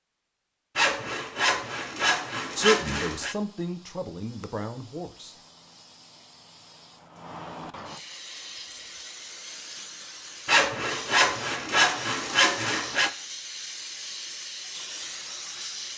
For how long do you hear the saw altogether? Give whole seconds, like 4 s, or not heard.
5 s.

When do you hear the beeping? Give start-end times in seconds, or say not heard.
not heard.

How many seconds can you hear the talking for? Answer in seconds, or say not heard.
3 s.